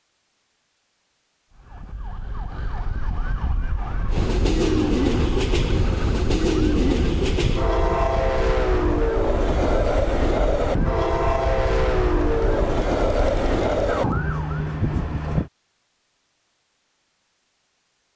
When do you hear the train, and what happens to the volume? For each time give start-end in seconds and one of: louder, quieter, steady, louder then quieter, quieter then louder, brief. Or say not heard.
4.0-15.5 steady.